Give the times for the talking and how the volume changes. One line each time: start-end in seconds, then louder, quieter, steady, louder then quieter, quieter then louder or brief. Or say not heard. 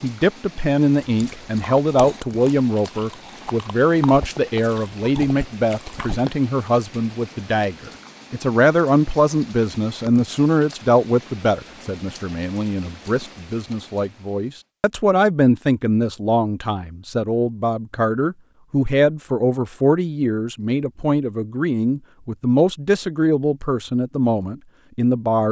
0.0-25.4 steady.